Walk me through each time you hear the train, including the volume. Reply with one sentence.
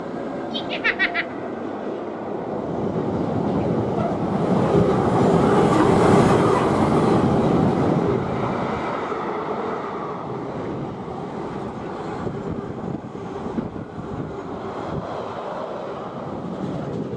The train can be heard from 0.0 to 17.1 s, getting louder then quieter.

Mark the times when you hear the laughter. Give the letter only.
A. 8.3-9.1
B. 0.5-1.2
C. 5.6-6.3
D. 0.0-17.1
B.